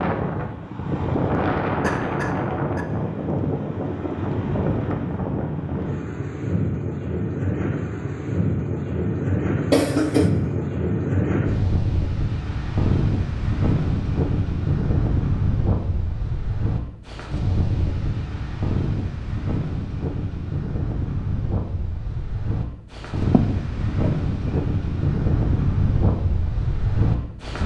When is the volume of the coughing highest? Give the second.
10 s.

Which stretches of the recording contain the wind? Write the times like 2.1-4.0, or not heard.
0.0-27.6.